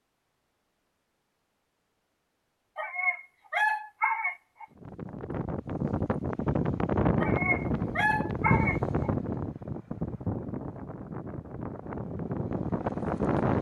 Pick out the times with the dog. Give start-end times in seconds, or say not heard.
2.8-4.7, 7.2-9.1.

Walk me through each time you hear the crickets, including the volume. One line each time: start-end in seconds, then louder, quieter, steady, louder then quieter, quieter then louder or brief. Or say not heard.
not heard.